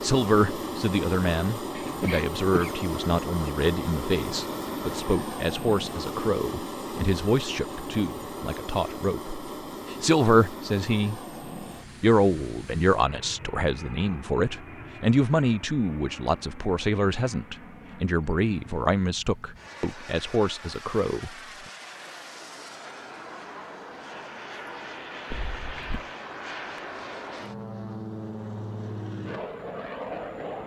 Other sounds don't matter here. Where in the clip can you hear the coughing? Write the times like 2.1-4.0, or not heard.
1.8-2.8, 25.3-26.1.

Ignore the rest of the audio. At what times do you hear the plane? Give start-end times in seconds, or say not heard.
0.0-30.6.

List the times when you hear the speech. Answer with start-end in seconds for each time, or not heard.
0.0-11.2, 12.0-21.3.